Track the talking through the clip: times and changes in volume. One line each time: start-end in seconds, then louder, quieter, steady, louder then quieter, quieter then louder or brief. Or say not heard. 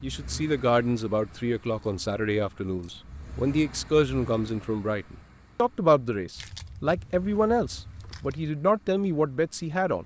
0.0-10.0 steady.